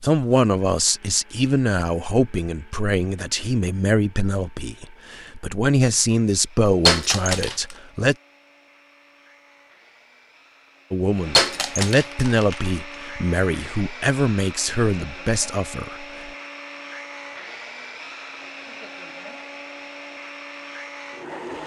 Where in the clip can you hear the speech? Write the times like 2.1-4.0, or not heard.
0.0-8.2, 10.9-16.3.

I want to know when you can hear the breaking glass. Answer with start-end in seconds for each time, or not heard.
6.8-7.8, 11.3-12.6.